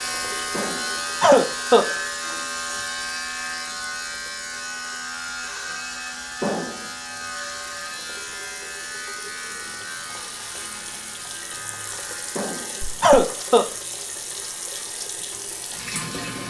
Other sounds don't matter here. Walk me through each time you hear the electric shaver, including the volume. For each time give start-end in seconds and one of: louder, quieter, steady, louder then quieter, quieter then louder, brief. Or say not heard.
0.0-16.4 quieter.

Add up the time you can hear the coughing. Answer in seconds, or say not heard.
3 s.